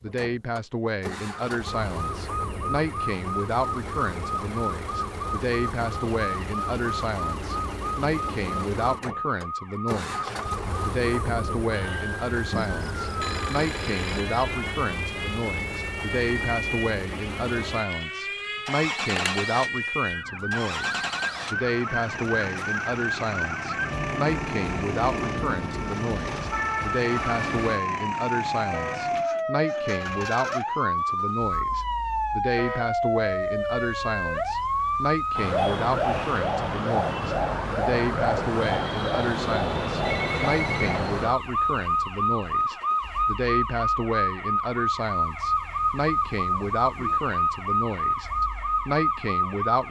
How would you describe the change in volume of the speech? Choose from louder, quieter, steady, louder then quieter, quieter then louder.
steady.